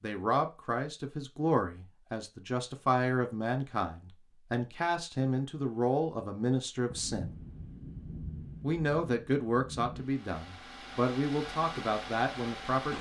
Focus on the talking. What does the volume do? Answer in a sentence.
The volume of the talking stays about the same.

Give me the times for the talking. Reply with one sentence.
The talking can be heard from 0.0 to 7.3 s and from 8.6 to 12.9 s.